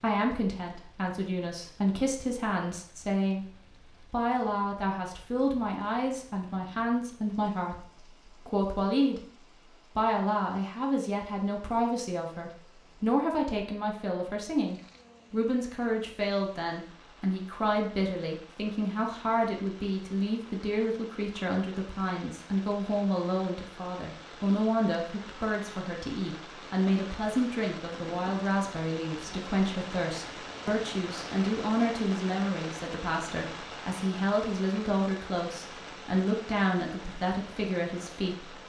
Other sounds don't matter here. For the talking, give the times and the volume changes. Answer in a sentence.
You can hear the talking from 0.0 to 9.2 s, at a steady volume; and from 9.9 to 38.6 s, at a steady volume.